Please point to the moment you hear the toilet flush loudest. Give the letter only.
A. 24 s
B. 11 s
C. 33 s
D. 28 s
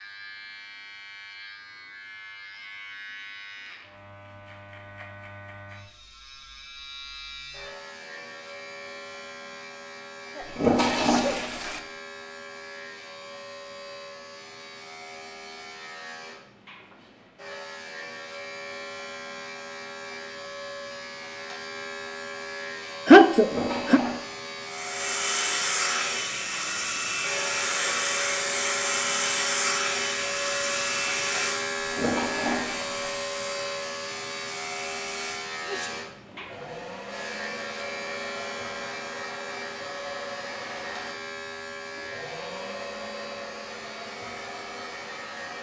B.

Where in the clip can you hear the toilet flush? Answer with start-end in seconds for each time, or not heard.
10.4-11.8, 23.4-24.2, 31.8-33.1.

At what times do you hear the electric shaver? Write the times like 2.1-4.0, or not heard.
0.0-45.5.